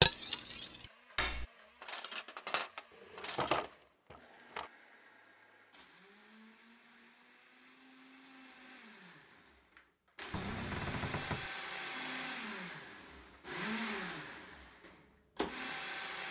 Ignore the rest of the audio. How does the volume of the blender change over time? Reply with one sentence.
The loudness of the blender goes up.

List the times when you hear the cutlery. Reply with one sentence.
The cutlery can be heard from 0.0 to 3.6 s.